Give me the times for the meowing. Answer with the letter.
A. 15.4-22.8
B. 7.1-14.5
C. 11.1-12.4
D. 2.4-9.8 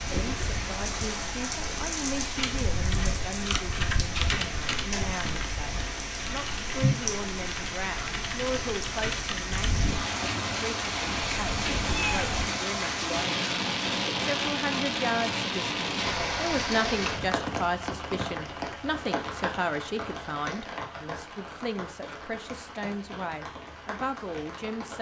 C.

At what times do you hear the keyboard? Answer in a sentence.
You can hear the keyboard from 2.4 to 9.8 s.